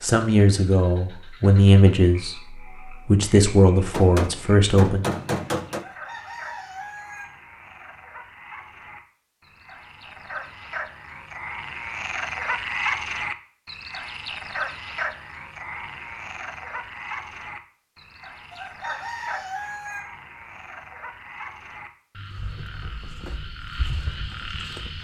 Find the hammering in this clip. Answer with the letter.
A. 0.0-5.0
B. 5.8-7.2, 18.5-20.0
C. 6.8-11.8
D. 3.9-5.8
D.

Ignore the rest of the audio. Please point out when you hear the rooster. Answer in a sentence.
You can hear the rooster from 5.8 to 7.2 s and from 18.5 to 20.0 s.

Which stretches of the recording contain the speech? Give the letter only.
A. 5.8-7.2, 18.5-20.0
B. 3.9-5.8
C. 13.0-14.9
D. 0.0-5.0
D.